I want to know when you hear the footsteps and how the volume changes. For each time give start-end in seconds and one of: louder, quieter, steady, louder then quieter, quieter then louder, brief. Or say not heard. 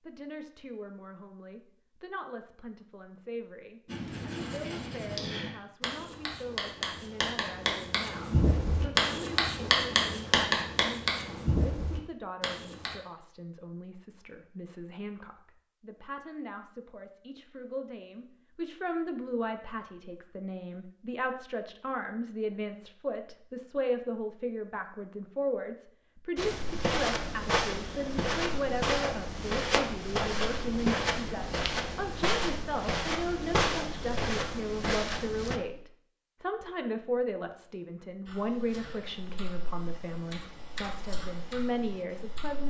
26.4-35.6 steady.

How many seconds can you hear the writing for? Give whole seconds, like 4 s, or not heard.
9 s.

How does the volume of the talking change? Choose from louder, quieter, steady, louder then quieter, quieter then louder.
louder.